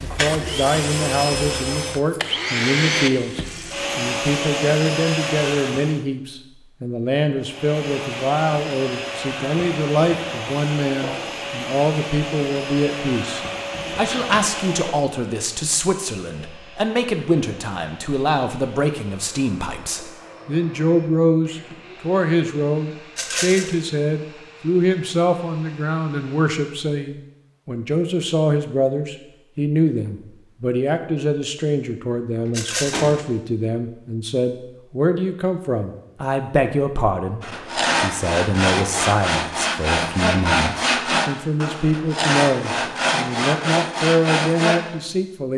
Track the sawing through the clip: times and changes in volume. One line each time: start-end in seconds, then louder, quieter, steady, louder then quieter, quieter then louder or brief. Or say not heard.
37.4-44.8 steady.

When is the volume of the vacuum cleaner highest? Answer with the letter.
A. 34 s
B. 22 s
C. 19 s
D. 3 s
D.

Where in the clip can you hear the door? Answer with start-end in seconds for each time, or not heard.
13.7-14.4, 32.5-33.4.